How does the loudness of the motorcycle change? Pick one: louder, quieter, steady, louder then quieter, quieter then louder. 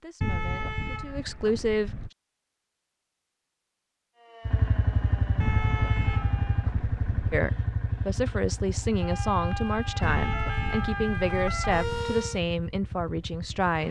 quieter.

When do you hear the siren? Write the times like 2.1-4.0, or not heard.
4.2-6.8, 8.8-12.4.